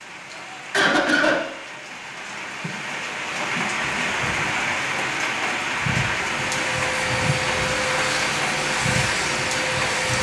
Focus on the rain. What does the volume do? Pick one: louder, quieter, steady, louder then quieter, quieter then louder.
louder.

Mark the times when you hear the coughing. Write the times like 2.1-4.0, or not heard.
0.3-1.4.